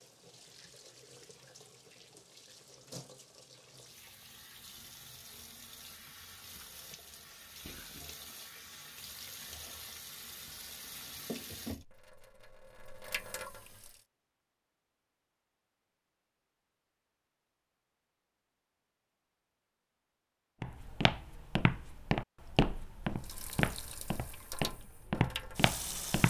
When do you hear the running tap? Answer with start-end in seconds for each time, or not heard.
0.0-14.0, 23.2-26.2.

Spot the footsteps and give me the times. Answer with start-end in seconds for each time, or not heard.
20.6-26.2.